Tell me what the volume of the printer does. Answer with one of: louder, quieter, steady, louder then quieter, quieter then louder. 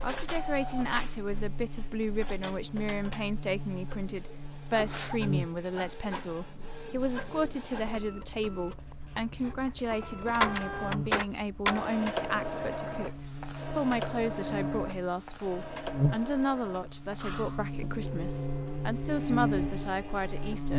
louder then quieter.